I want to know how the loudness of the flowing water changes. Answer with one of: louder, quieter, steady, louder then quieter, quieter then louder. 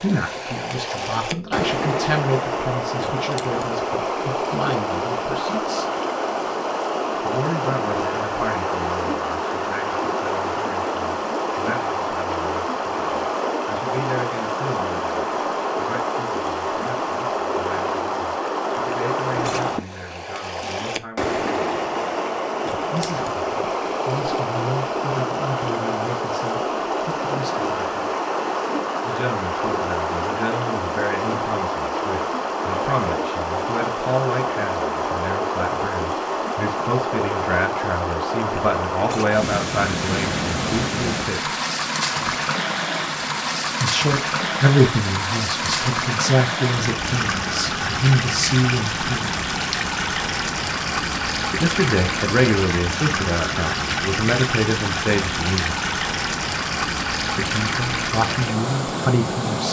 steady.